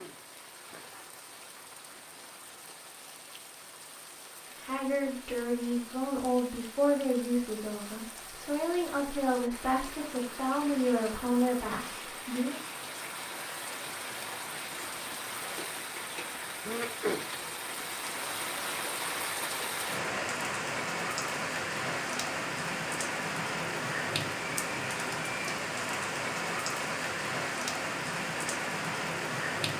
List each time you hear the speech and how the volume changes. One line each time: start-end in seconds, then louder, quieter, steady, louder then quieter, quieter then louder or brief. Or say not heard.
4.6-12.6 steady.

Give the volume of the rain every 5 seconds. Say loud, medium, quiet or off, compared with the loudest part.
quiet, quiet, medium, loud, loud, loud.